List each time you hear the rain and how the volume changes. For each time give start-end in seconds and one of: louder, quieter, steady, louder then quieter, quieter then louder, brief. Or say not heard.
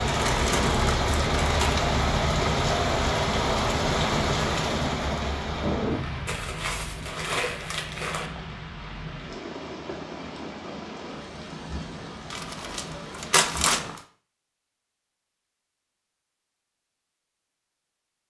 0.0-14.0 quieter.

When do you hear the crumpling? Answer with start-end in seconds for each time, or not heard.
0.1-1.9, 6.2-8.3, 12.3-14.0.